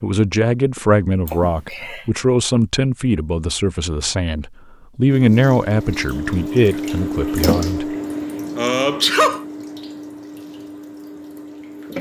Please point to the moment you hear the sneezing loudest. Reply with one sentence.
The loudest moment of the sneezing is at 9 seconds.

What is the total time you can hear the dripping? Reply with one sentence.
You can hear the dripping for 7 seconds altogether.